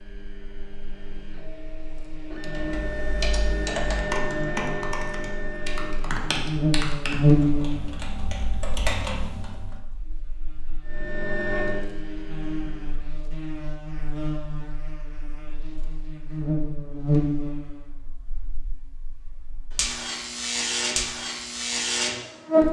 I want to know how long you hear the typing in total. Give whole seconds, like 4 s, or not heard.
7 s.